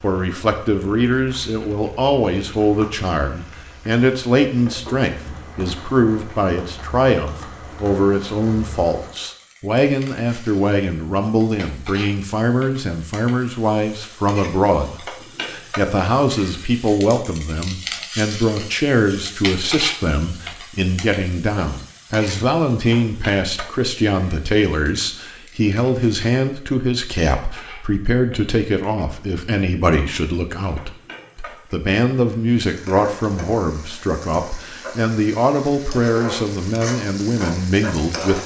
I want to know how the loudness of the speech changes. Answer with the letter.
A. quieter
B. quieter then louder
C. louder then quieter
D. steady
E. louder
D.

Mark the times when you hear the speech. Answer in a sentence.
The speech can be heard from 0.0 to 38.4 s.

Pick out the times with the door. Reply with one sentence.
You can't hear the door here.